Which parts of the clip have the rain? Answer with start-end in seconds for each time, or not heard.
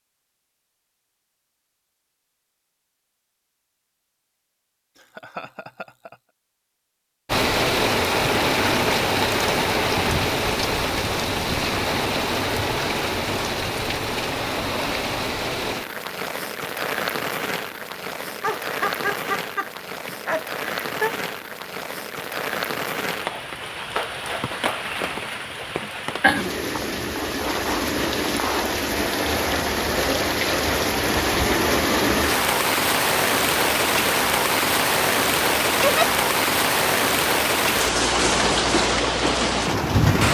7.2-40.2.